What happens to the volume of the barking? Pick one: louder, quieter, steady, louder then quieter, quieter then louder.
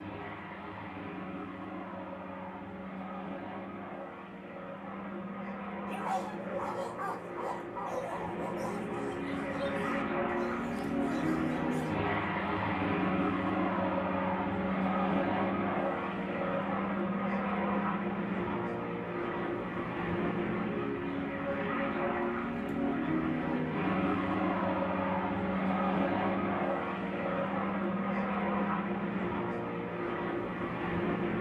quieter.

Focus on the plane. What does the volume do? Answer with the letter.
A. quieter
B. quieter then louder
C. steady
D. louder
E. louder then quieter
D.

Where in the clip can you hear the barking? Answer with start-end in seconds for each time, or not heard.
5.8-12.0.